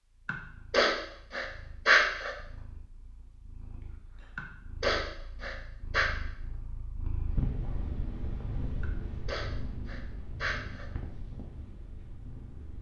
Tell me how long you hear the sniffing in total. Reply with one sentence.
The sniffing can be heard for 6 seconds in total.